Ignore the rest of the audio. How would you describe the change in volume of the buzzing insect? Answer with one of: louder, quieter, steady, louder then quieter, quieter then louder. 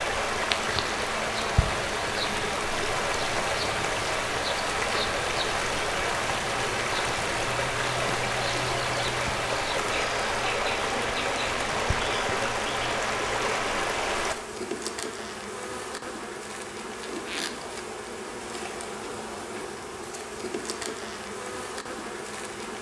steady.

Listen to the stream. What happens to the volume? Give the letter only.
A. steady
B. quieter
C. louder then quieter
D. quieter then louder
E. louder
A.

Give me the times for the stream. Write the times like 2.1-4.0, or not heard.
0.0-14.3.